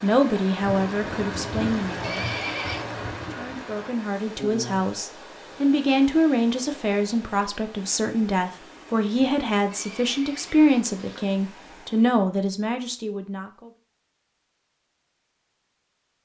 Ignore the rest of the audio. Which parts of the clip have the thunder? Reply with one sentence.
You can hear the thunder from 0.6 to 3.6 s.